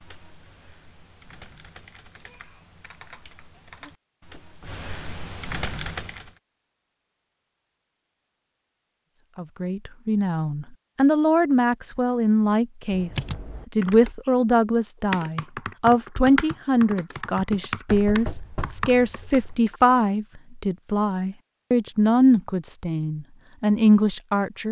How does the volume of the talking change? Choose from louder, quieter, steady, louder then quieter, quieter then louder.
steady.